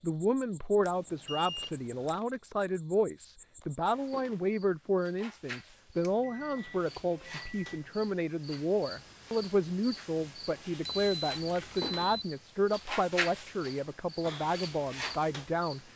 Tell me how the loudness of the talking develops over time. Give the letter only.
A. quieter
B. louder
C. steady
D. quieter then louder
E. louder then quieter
C.